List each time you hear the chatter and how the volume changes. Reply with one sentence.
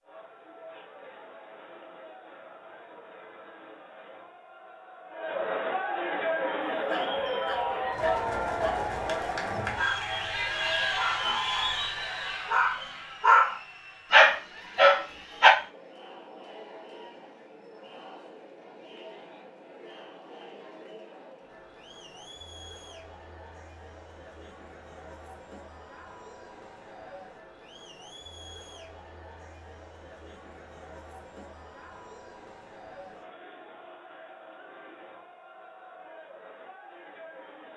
The chatter can be heard from 0.0 to 37.7 s, getting quieter.